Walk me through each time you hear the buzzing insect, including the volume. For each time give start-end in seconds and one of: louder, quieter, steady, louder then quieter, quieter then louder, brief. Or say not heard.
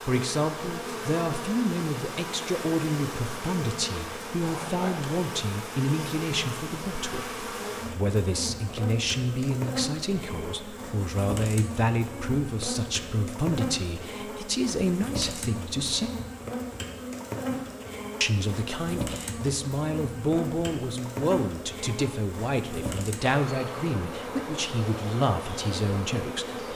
0.0-26.7 steady.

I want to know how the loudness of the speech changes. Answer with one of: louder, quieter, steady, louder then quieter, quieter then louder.
steady.